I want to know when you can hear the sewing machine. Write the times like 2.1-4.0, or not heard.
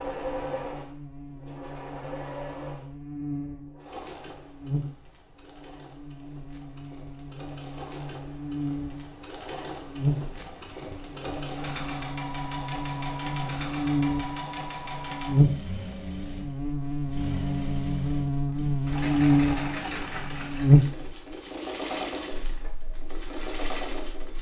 0.0-24.3.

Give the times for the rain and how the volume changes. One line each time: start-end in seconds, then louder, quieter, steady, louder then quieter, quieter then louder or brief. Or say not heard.
not heard.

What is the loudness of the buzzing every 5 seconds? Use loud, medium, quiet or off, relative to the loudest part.
quiet, quiet, medium, loud, loud.